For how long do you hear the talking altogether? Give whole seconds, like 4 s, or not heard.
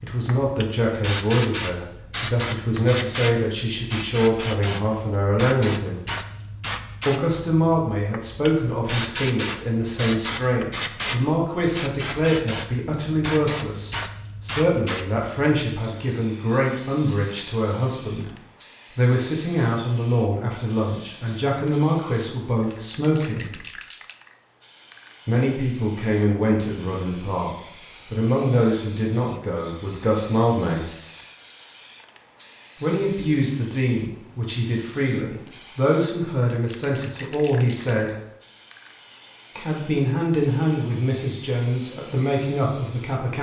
37 s.